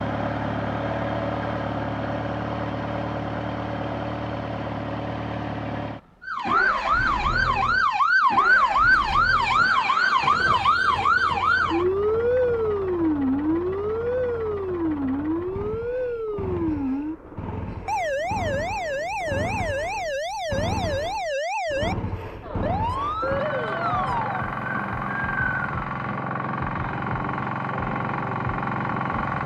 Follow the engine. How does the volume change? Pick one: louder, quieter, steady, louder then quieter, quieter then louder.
quieter then louder.